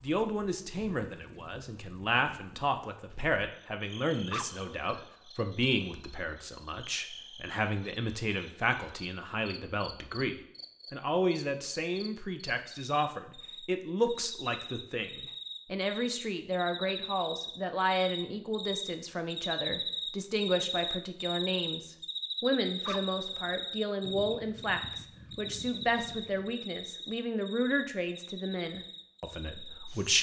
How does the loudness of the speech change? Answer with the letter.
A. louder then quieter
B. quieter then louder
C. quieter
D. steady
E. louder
D.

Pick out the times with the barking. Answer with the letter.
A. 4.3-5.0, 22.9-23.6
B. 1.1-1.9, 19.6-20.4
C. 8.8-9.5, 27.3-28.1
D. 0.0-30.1
A.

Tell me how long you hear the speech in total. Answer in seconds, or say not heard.
30 s.